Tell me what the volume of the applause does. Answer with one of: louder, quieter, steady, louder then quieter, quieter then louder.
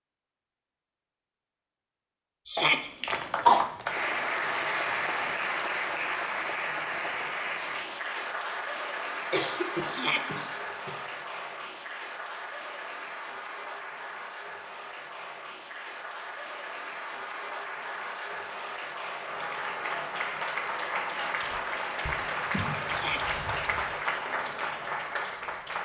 quieter then louder.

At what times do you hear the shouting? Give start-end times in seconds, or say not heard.
2.5-2.9, 9.9-10.3, 22.9-23.3.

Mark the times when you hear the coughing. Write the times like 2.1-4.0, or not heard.
2.5-3.6, 9.3-10.9, 22.1-22.8.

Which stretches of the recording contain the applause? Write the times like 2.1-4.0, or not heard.
3.0-25.7.